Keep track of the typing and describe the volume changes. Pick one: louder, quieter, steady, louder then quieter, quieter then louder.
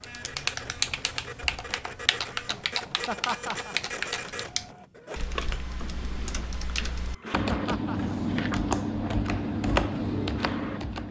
quieter then louder.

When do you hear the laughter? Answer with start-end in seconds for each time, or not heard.
3.0-3.8, 7.5-8.2.